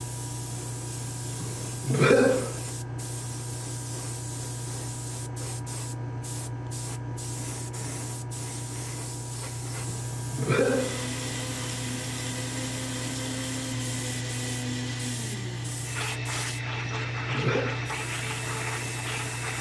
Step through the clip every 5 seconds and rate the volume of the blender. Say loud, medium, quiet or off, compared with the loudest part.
off, off, loud, loud.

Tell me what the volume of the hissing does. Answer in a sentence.
The volume of the hissing stays about the same.